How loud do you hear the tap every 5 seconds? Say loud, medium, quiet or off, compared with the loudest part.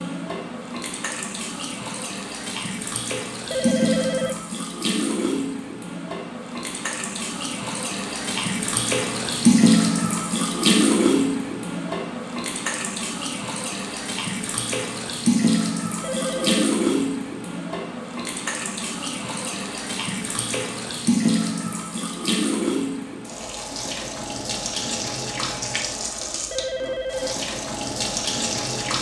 medium, loud, loud, loud, loud, medium.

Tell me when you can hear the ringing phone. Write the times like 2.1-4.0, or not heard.
3.5-4.4, 16.0-16.7, 26.5-27.4.